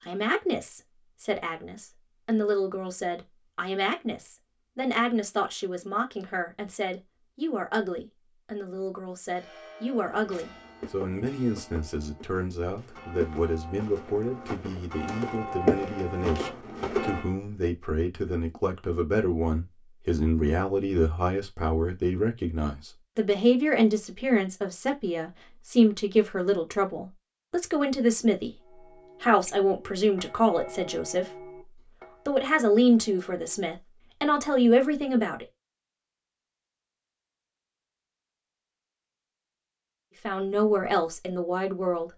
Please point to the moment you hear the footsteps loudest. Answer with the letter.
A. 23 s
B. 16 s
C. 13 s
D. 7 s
B.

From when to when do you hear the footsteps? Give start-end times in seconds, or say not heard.
10.1-17.2.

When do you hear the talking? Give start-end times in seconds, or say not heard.
0.0-28.5, 29.2-31.2, 32.2-35.5, 40.2-42.1.